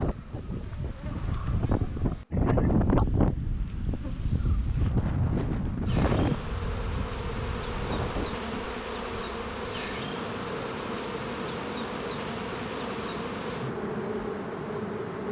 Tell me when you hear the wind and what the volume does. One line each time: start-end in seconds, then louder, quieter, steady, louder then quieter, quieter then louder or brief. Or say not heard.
0.0-15.2 quieter.